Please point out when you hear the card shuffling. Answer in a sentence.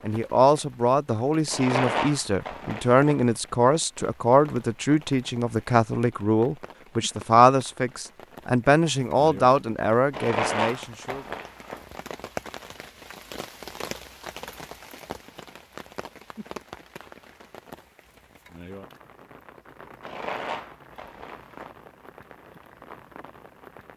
You can hear the card shuffling from 1.5 to 3.2 s, from 10.1 to 11.8 s and from 20.0 to 21.7 s.